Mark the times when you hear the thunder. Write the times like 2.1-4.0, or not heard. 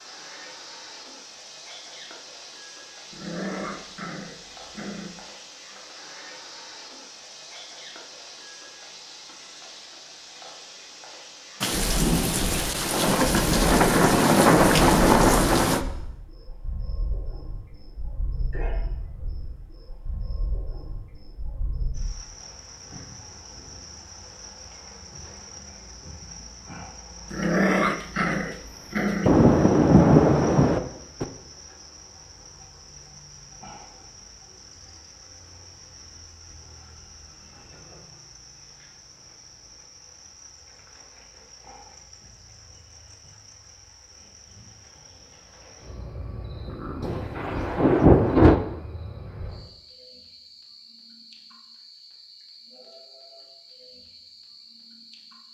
11.6-15.8, 29.2-31.2, 47.0-48.5.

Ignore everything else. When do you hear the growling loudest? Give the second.
28 s.